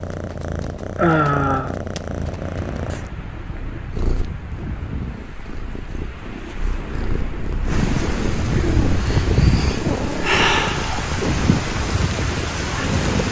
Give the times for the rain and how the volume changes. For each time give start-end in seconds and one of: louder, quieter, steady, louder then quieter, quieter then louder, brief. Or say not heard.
2.3-13.2 louder.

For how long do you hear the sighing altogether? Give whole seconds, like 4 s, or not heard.
3 s.